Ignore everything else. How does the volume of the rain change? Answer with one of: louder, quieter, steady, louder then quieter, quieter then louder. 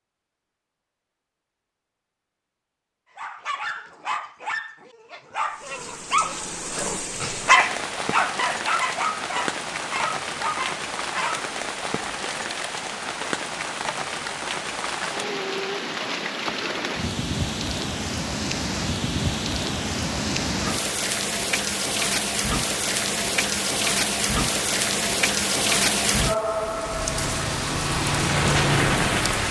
louder.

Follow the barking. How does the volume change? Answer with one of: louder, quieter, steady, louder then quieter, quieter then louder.
louder then quieter.